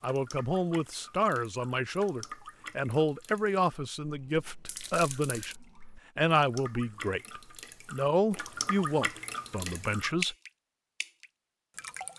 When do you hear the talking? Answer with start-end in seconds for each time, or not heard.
0.0-5.5, 6.2-10.3.